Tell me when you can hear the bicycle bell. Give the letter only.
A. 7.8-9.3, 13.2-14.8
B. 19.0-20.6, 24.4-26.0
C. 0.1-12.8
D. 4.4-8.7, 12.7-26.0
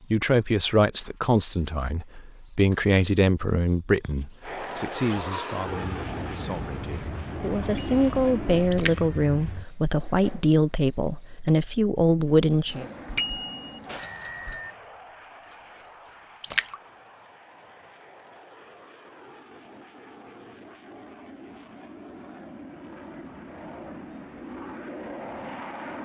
A.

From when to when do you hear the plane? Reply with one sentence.
You can hear the plane from 4.4 to 8.7 s and from 12.7 to 26.0 s.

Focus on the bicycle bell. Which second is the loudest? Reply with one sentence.
The volume of the bicycle bell peaks at 14 seconds.